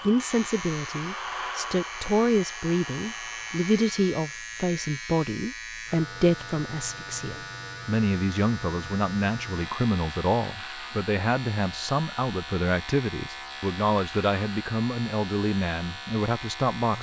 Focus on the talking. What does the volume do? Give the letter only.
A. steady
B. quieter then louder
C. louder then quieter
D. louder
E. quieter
A.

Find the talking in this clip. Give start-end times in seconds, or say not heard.
0.0-16.9.